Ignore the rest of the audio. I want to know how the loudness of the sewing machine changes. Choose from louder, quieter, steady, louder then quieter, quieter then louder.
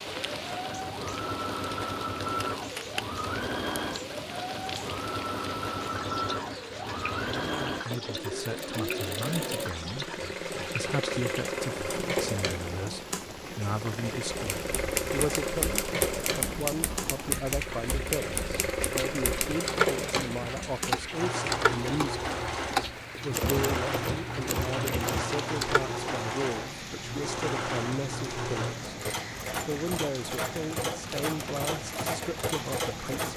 steady.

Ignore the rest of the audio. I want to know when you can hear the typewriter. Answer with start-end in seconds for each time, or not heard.
14.6-26.0.